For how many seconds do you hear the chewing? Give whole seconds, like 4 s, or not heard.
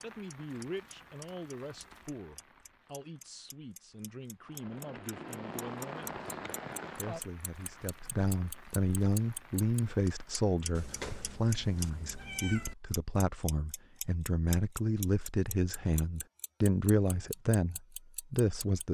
not heard.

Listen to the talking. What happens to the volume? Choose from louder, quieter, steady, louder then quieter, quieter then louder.
louder.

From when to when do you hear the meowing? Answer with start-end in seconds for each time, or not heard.
10.8-12.8.